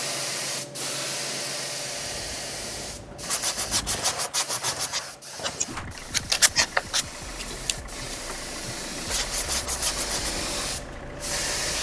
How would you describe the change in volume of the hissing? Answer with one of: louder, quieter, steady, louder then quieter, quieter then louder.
quieter then louder.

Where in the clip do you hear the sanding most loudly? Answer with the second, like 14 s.
6 s.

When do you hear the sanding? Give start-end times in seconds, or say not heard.
3.2-10.3.